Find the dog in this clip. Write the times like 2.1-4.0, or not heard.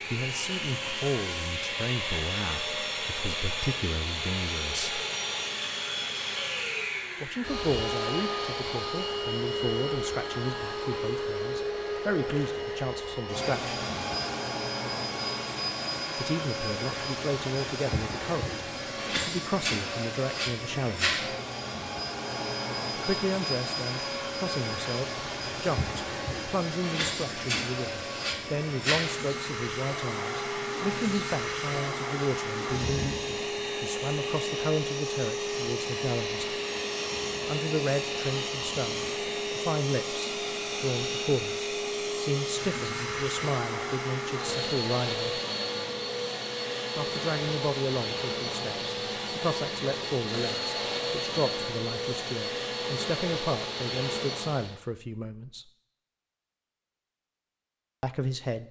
not heard.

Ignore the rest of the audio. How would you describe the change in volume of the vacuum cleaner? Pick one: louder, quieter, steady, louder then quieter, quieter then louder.
steady.